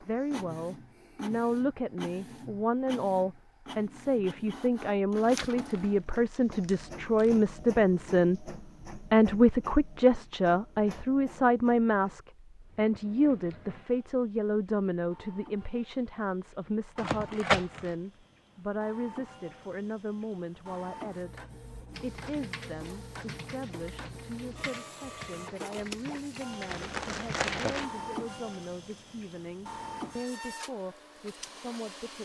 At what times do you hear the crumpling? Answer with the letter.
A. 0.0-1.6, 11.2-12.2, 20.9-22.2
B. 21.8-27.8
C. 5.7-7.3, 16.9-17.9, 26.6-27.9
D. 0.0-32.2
C.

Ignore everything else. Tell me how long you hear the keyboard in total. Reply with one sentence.
You can hear the keyboard for 6 seconds altogether.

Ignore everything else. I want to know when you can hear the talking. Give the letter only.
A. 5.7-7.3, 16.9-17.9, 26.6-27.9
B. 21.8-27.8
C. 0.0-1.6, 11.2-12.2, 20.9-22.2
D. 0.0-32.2
D.